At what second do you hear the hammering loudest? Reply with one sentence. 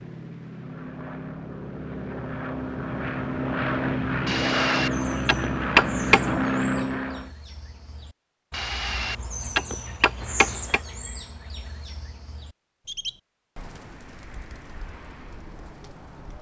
The loudest moment of the hammering is at 6 seconds.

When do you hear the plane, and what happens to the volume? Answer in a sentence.
You can hear the plane from 0.0 to 7.3 s, getting louder.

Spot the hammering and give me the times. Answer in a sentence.
The hammering can be heard from 4.2 to 6.3 s and from 8.5 to 10.8 s.